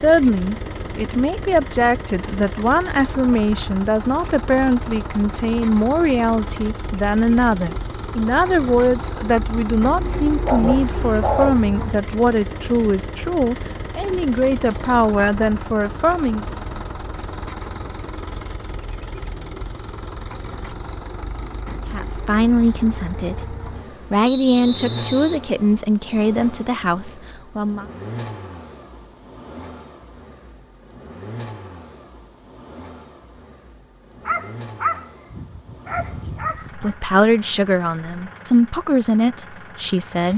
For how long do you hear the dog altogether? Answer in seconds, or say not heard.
4 s.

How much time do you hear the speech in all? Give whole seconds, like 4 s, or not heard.
26 s.